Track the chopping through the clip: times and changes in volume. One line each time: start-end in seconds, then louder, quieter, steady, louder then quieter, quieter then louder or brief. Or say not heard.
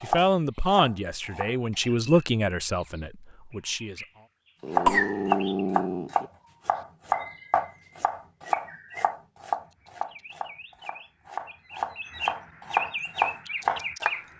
0.0-1.6 brief
4.7-14.2 quieter then louder.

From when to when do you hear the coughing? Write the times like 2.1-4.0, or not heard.
4.8-5.5.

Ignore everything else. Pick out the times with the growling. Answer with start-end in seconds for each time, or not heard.
4.6-6.3.